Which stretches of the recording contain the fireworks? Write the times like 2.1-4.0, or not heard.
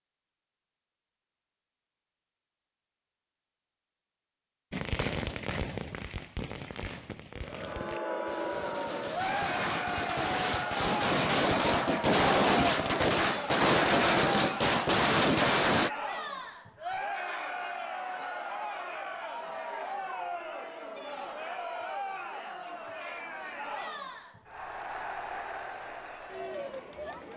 4.7-15.9.